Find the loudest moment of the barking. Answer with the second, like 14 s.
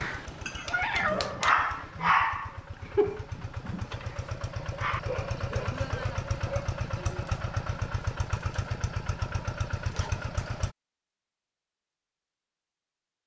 2 s.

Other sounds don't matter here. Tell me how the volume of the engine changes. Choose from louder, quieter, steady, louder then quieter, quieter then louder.
louder.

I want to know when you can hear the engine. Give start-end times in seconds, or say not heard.
0.0-10.8.